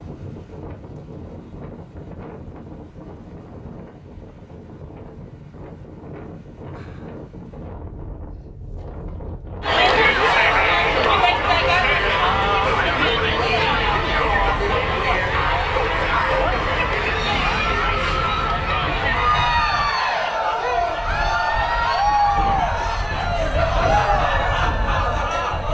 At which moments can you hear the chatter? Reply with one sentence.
You can hear the chatter from 9.6 to 25.7 s.